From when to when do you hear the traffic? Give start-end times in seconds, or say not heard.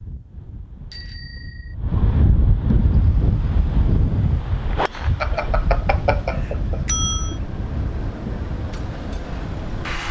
2.8-10.0.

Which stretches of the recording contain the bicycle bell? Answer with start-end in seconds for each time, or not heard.
0.9-1.8, 5.2-7.3.